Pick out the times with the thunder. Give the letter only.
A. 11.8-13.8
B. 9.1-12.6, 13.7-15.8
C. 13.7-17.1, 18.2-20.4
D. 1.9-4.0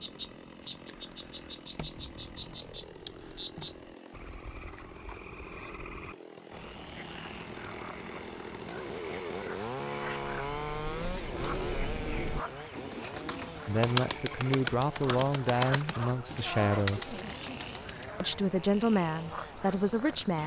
D.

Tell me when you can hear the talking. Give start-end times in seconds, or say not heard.
13.7-17.1, 18.2-20.4.